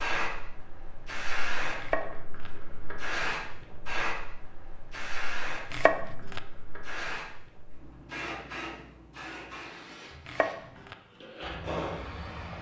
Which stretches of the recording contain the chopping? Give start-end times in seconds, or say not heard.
1.8-2.5, 5.7-6.4, 10.2-10.9.